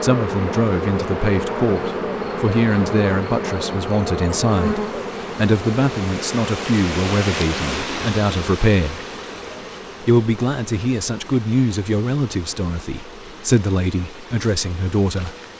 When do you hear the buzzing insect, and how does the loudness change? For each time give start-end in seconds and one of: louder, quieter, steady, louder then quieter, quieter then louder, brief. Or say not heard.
0.0-15.5 quieter.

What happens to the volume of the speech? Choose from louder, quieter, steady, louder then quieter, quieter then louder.
steady.